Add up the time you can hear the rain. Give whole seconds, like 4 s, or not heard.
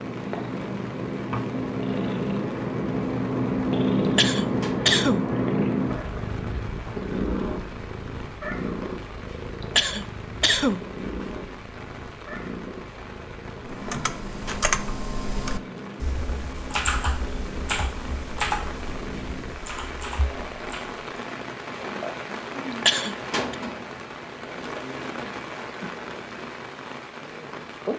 28 s.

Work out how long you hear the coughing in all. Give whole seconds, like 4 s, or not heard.
3 s.